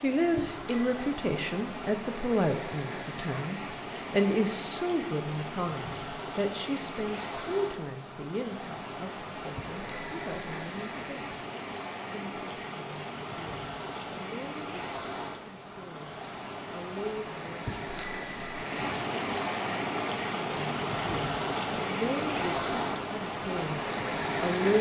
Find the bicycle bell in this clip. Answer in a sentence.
You can hear the bicycle bell from 0.3 to 1.2 s, from 9.6 to 10.4 s and from 17.6 to 18.6 s.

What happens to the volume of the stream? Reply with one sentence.
The volume of the stream goes up.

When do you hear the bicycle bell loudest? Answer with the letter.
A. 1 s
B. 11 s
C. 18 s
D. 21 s
C.